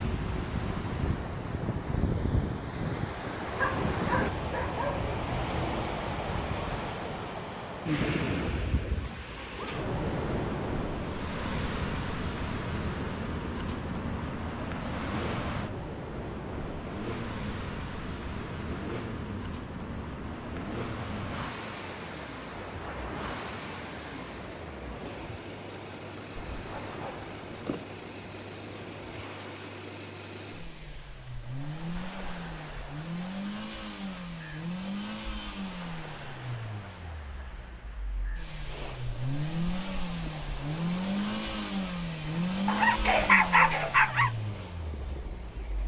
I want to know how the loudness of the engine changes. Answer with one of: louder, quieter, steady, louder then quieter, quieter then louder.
louder.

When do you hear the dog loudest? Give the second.
43 s.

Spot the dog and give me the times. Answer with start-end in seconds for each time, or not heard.
3.6-5.9, 26.4-27.9, 42.6-44.3.